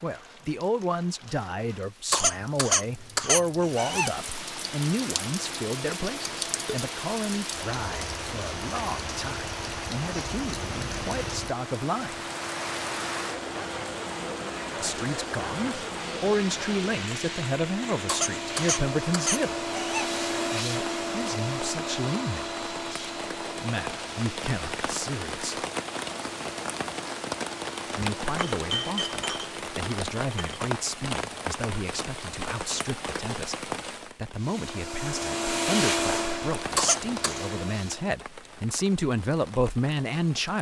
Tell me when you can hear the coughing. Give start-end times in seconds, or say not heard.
2.1-4.1, 18.1-20.1, 36.8-37.4.